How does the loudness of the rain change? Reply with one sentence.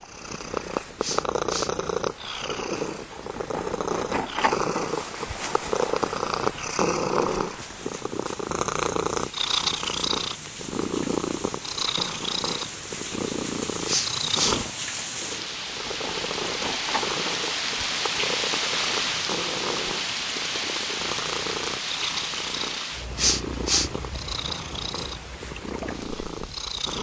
The loudness of the rain goes up, then down.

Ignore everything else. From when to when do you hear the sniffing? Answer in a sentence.
The sniffing can be heard from 1.0 to 1.7 s, from 13.8 to 14.6 s and from 23.1 to 23.9 s.